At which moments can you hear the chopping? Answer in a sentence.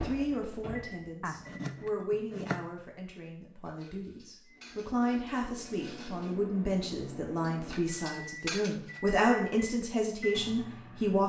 You can hear the chopping from 1.2 to 2.8 s.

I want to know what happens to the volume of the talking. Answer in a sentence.
The volume of the talking goes down, then up.